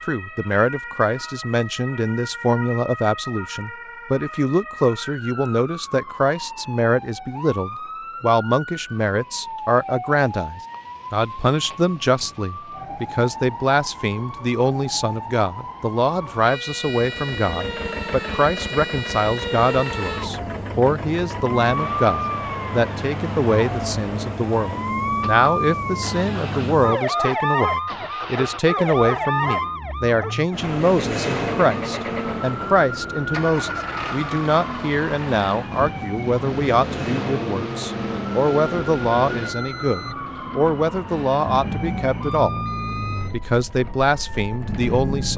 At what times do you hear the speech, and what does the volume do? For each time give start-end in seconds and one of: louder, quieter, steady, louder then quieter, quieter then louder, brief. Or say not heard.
0.1-42.6 steady
43.3-45.3 brief.